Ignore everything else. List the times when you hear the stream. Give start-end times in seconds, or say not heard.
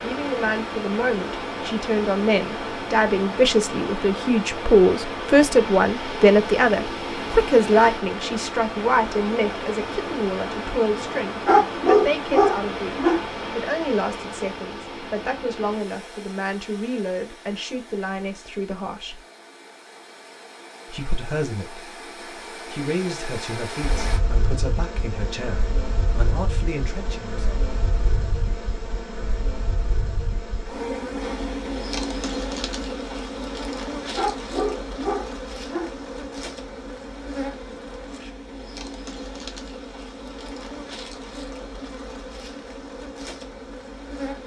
0.0-24.2.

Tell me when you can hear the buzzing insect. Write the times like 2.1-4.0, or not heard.
23.8-44.4.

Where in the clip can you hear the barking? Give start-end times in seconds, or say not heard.
11.4-13.2, 34.1-35.9.